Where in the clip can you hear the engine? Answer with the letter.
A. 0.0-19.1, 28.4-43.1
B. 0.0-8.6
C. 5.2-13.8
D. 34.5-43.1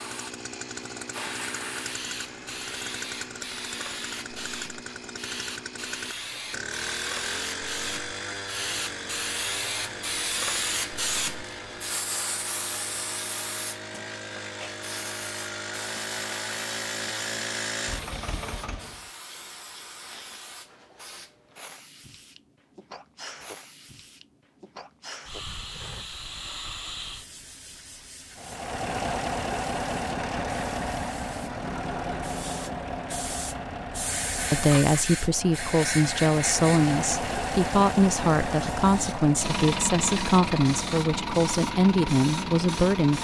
A.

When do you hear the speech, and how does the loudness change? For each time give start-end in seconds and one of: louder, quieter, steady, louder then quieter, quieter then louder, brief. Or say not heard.
34.5-43.1 steady.